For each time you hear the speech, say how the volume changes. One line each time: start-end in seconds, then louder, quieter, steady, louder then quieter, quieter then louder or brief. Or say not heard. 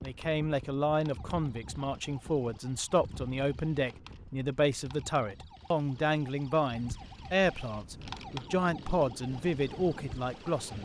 0.0-10.8 steady.